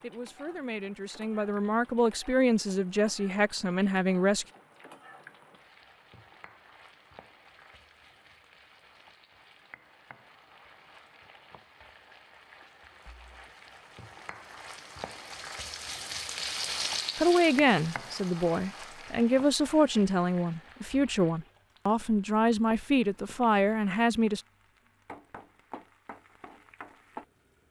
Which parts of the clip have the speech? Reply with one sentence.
The speech can be heard from 0.0 to 4.5 s and from 17.1 to 24.4 s.